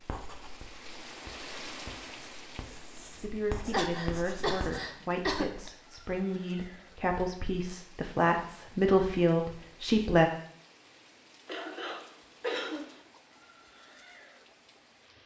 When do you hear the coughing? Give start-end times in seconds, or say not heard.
3.6-5.7, 11.4-12.9.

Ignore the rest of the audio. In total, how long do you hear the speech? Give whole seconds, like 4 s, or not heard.
7 s.